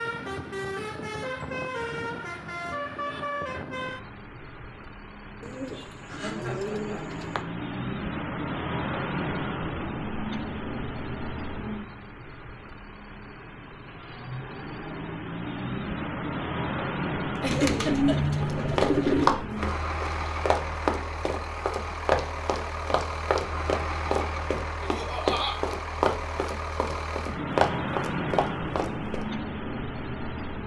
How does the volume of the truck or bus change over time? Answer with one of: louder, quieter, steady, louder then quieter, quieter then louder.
steady.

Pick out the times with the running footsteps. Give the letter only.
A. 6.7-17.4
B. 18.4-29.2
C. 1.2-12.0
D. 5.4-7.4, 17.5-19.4
B.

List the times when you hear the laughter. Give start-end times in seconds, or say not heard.
6.0-7.2, 17.4-18.2, 24.8-25.6.